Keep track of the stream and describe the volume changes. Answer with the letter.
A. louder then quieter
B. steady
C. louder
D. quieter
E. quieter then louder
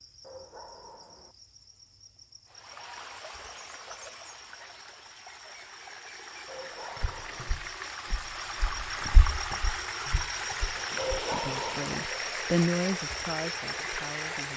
C.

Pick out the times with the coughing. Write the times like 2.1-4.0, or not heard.
not heard.